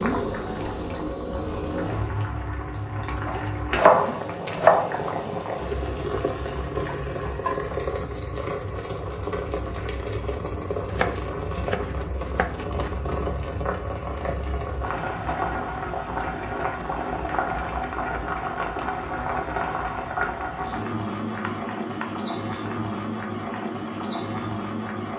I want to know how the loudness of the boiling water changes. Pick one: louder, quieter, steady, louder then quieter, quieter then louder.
steady.